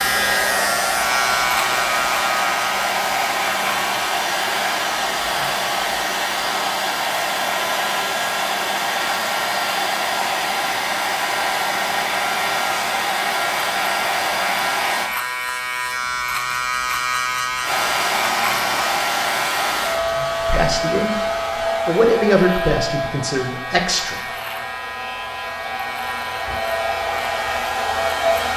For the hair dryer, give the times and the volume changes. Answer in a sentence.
You can hear the hair dryer from 0.0 to 15.1 s, at a steady volume; and from 17.6 to 28.5 s, getting quieter then louder.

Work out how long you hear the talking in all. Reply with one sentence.
You can hear the talking for 3 seconds altogether.